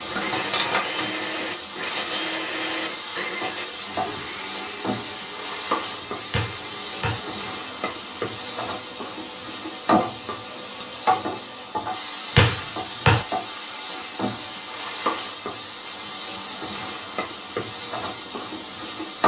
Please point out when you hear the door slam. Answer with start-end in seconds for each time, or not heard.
6.3-7.2, 12.3-13.2.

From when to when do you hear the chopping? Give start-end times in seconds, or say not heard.
not heard.